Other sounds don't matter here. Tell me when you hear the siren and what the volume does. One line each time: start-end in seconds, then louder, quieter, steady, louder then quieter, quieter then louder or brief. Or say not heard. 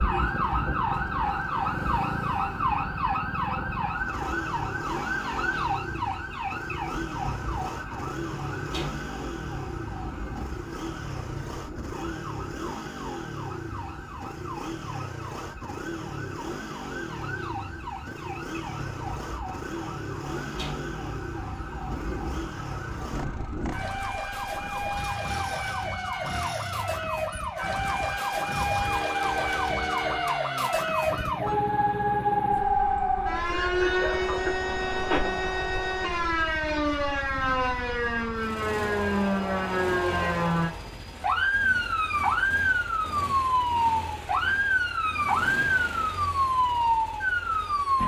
0.0-48.0 quieter then louder.